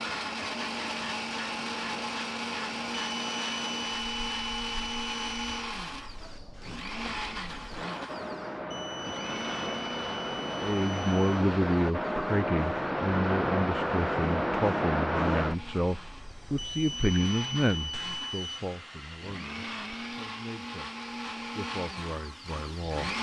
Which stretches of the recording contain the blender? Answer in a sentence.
The blender can be heard from 0.0 to 23.1 s.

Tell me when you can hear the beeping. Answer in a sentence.
You can hear the beeping from 2.9 to 5.7 s, from 8.7 to 11.4 s and from 16.6 to 18.6 s.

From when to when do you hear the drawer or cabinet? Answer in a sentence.
You can't hear the drawer or cabinet here.